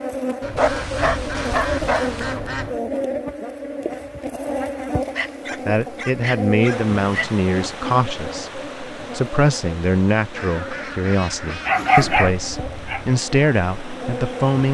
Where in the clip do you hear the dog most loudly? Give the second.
12 s.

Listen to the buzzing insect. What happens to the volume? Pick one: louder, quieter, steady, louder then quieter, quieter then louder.
quieter.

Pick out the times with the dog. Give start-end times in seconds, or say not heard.
0.6-2.4, 5.2-7.3, 11.7-13.1.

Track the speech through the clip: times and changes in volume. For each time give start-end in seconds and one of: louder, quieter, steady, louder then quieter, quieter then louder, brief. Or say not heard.
5.7-14.6 steady.